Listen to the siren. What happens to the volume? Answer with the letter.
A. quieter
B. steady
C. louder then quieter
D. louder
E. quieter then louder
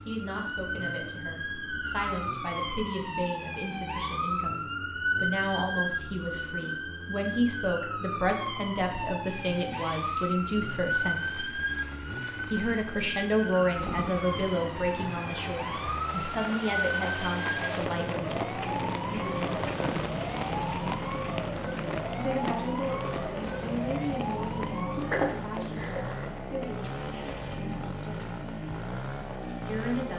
B.